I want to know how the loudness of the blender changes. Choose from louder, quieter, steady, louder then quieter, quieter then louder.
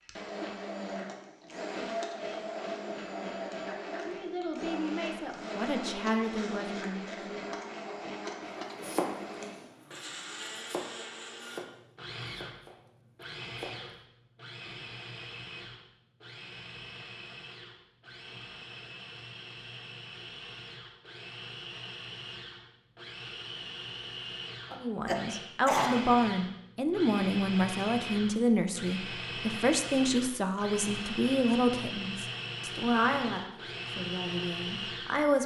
quieter then louder.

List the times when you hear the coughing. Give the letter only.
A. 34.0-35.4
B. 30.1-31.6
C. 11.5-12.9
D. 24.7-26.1
D.